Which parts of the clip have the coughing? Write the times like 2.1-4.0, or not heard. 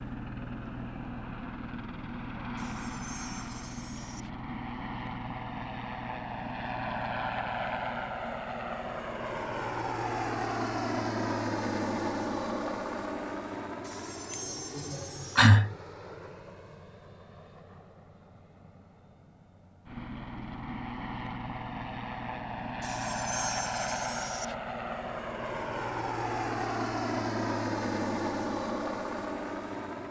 14.3-15.8.